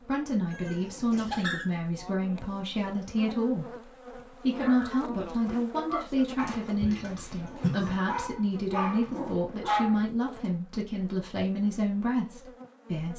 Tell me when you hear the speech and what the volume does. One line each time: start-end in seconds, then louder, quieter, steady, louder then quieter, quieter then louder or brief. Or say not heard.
0.0-13.1 steady.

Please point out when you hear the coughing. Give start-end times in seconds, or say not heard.
6.8-8.0.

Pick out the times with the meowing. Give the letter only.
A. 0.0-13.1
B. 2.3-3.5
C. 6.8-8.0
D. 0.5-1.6
D.